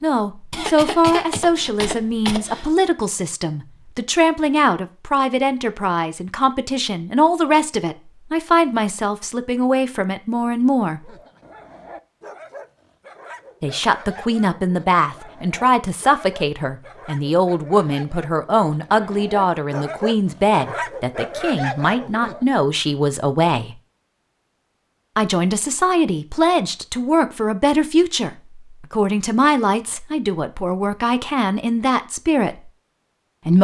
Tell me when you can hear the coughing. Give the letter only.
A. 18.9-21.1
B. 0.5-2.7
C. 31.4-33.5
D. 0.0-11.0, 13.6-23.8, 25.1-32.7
B.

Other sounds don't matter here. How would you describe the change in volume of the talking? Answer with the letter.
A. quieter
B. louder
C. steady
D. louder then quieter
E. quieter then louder
C.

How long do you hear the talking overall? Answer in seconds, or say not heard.
29 s.